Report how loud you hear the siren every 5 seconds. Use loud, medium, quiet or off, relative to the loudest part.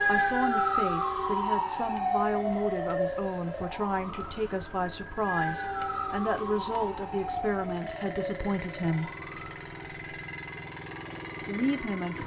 loud, medium, quiet.